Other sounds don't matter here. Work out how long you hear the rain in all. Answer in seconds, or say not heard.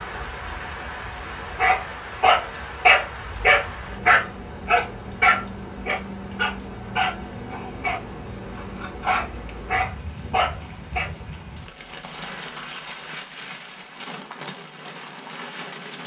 16 s.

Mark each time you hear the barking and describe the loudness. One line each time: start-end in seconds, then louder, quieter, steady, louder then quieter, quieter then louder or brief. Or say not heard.
1.6-11.1 quieter then louder.